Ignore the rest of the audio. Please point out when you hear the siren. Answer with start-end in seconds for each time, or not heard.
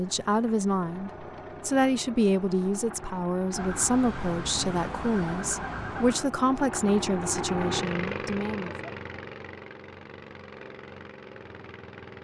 3.5-6.3.